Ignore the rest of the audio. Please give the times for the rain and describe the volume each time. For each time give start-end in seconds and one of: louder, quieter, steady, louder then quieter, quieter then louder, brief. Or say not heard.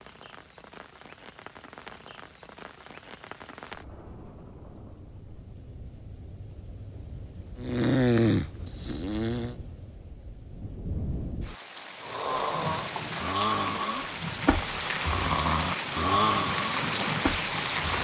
0.0-17.9 louder.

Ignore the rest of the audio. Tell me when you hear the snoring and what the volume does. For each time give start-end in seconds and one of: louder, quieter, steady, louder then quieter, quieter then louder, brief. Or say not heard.
7.6-9.6 brief
12.0-17.9 louder then quieter.